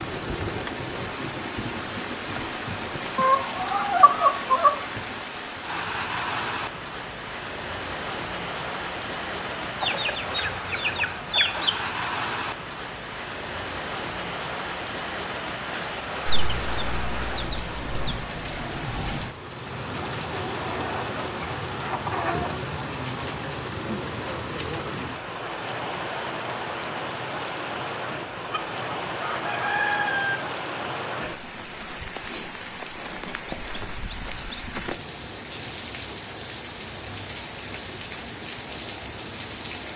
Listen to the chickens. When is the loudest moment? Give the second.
4 s.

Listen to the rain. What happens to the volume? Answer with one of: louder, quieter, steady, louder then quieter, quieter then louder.
steady.